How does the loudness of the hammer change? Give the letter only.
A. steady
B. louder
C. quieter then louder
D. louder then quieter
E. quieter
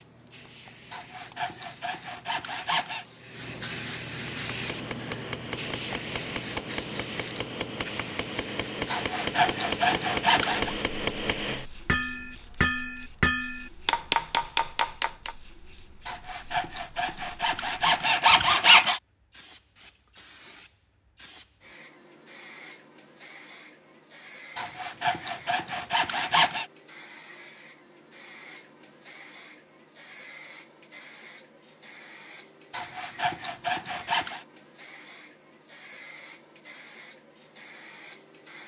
B.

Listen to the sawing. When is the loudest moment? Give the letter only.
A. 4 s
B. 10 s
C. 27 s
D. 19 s
D.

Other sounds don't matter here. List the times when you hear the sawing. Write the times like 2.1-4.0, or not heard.
0.9-3.0, 8.8-10.8, 16.1-19.0, 24.6-26.6, 32.7-34.5.